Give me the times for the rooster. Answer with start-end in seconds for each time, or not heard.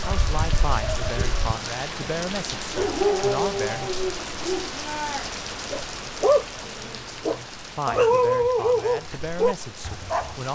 0.0-1.6.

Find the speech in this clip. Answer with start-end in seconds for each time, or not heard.
0.0-3.9, 7.8-10.5.